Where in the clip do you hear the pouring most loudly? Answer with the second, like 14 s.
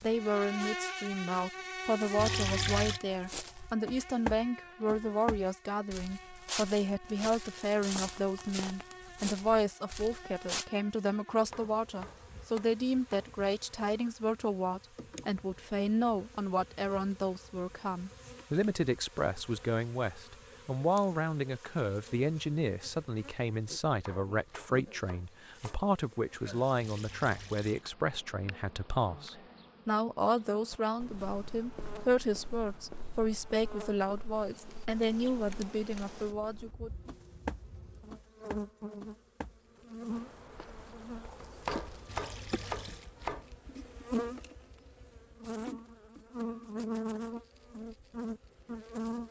3 s.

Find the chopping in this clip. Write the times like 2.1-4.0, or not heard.
11.5-13.3, 24.0-25.9, 41.6-43.5.